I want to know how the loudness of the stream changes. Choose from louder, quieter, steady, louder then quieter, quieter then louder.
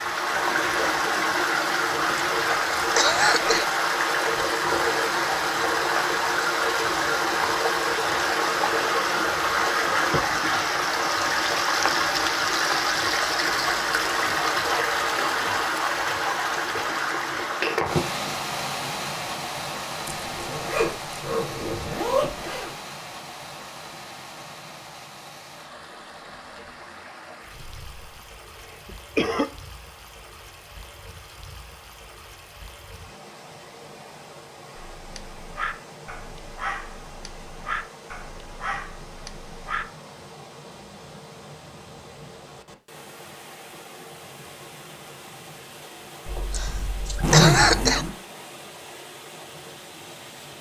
quieter.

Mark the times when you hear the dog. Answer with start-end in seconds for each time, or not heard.
34.8-39.9.